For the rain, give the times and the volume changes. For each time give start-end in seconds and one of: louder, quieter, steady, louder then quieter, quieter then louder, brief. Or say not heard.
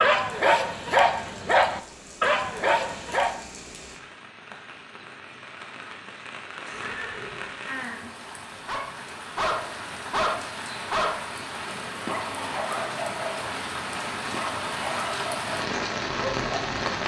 0.1-17.0 louder.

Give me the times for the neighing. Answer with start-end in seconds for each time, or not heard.
6.7-7.5.